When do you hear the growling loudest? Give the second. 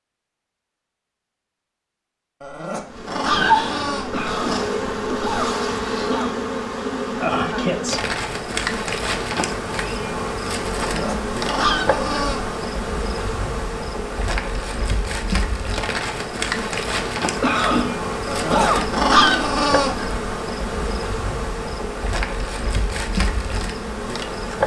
19 s.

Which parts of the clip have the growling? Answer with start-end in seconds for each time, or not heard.
2.4-4.7, 10.8-12.4, 18.2-19.9.